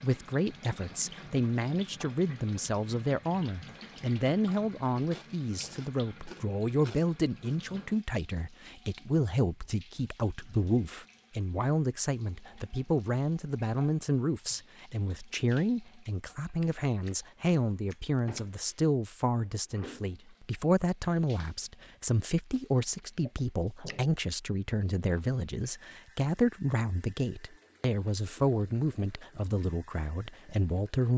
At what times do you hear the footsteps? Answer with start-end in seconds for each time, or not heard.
not heard.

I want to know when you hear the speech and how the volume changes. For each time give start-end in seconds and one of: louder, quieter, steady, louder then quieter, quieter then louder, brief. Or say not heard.
0.0-31.1 steady.